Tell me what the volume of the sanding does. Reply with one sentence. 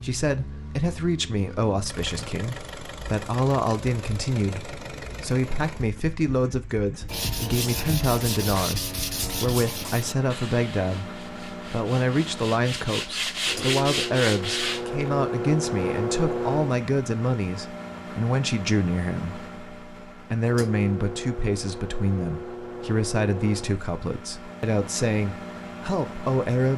The volume of the sanding goes down, then up.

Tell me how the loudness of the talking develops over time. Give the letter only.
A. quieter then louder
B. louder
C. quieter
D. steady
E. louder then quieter
D.